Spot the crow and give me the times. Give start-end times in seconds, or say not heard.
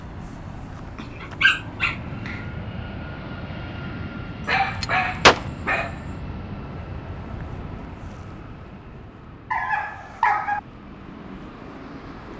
not heard.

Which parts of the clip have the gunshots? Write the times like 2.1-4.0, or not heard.
4.5-5.4.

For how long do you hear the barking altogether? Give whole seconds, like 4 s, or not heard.
4 s.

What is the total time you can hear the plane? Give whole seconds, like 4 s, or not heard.
12 s.